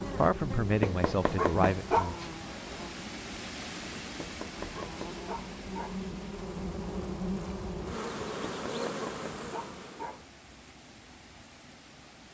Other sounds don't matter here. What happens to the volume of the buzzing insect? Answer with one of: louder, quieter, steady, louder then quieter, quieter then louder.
quieter then louder.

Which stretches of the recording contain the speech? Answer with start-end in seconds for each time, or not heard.
0.1-2.1.